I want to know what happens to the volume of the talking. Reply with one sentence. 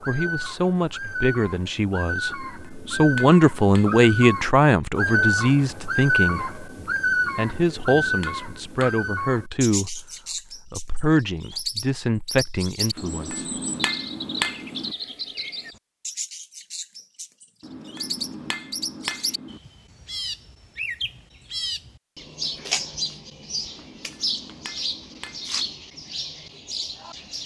The loudness of the talking goes up, then down.